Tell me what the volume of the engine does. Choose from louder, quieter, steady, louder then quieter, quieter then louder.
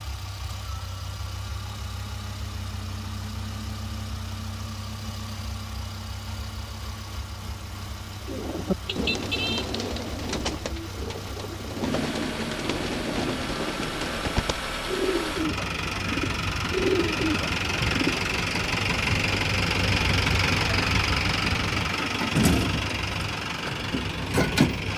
louder.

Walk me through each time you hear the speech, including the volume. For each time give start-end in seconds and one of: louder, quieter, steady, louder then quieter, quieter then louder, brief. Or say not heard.
not heard.